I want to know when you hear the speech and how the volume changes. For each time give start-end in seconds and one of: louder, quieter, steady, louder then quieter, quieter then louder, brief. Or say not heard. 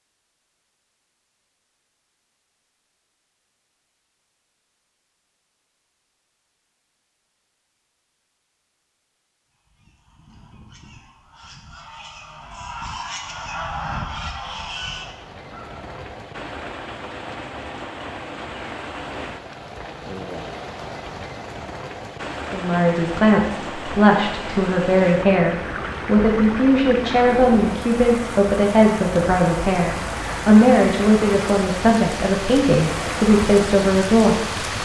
22.5-34.6 steady.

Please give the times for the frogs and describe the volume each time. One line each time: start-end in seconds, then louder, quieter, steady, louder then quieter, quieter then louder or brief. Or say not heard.
not heard.